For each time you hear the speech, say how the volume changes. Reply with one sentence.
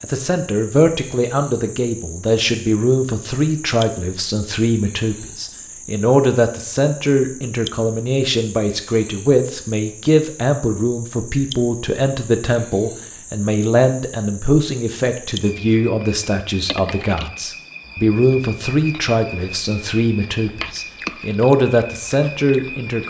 You can hear the speech from 0.0 to 23.0 s, at a steady volume.